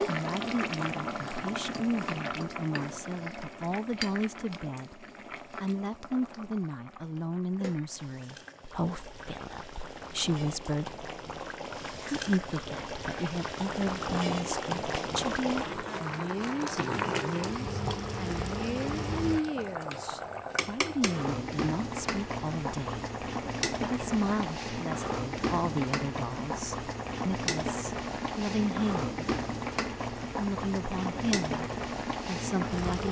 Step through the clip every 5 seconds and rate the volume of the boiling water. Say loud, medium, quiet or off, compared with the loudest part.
loud, quiet, loud, loud, loud, loud, loud.